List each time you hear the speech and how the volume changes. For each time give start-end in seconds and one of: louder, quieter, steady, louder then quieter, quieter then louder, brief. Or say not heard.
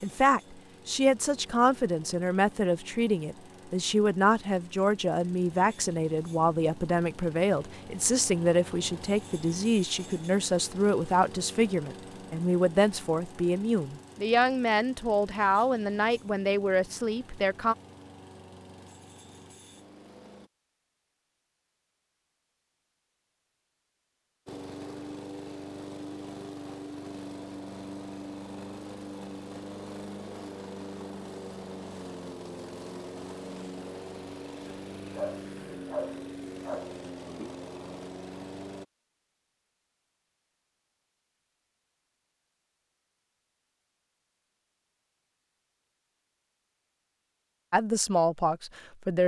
0.0-17.8 steady
47.7-49.2 brief.